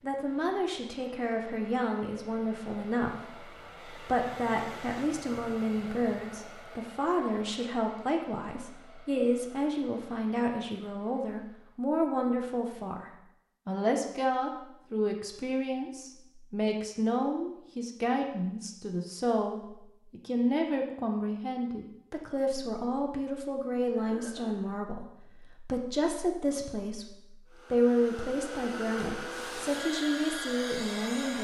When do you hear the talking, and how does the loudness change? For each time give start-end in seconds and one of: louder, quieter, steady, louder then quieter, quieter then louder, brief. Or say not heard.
0.0-31.3 steady.